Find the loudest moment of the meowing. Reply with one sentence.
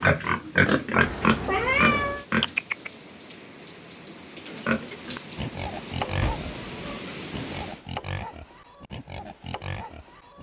The loudest moment of the meowing is at 2 seconds.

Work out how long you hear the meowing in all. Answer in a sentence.
The meowing can be heard for 2 seconds in total.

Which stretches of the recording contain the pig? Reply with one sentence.
You can hear the pig from 0.0 to 2.9 s and from 4.3 to 10.3 s.